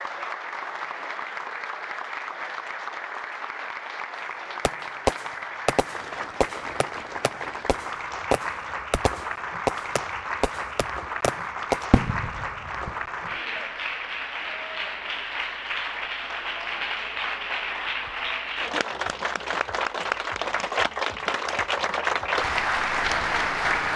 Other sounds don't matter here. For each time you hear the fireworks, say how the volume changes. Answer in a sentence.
The fireworks can be heard from 4.7 to 13.1 s, getting quieter then louder.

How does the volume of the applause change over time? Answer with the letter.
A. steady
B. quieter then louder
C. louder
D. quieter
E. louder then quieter
C.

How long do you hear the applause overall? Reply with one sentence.
The applause can be heard for 24 seconds in total.